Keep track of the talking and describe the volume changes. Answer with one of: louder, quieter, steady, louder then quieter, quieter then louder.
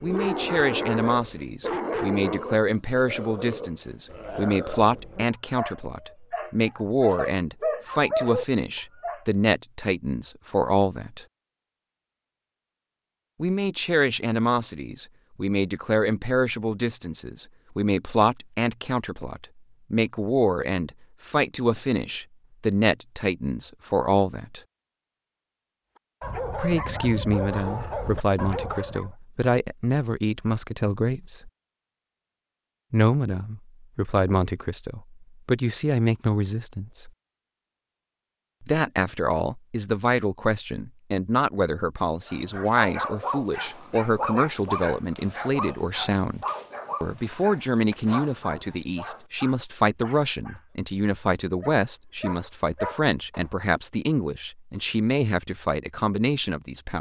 steady.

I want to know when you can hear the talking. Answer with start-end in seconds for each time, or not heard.
0.0-11.2, 13.4-24.6, 26.6-31.5, 32.9-37.1, 38.6-56.9.